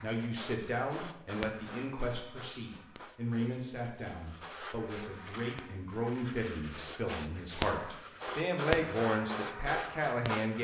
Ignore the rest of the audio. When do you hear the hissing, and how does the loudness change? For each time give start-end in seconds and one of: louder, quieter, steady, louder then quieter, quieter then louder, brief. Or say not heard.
0.0-10.5 quieter then louder.